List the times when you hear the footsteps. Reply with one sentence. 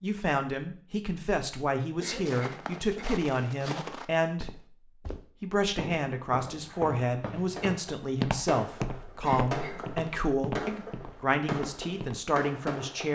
You can hear the footsteps from 2.0 to 12.2 s.